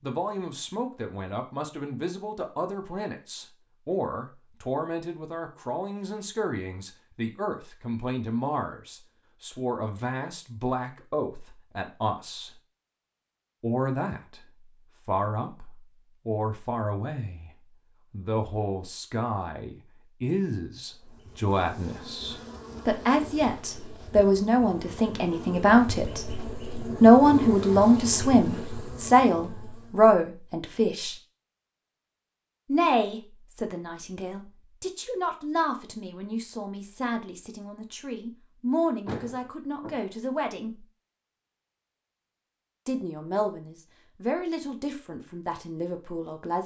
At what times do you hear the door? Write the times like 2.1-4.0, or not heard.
39.0-40.0.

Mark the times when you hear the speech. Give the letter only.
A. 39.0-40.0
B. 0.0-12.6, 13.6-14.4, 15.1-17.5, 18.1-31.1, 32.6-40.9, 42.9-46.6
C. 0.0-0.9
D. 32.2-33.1
B.